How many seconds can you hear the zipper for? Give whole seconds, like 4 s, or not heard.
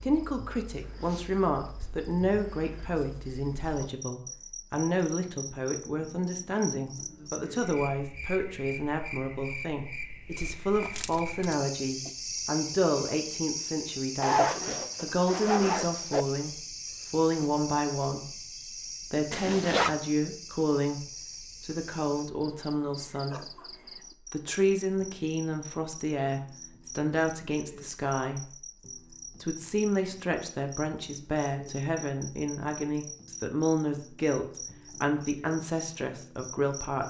3 s.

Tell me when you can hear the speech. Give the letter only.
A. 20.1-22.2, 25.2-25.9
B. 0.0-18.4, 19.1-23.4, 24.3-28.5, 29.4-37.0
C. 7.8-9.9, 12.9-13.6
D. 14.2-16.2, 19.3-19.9
B.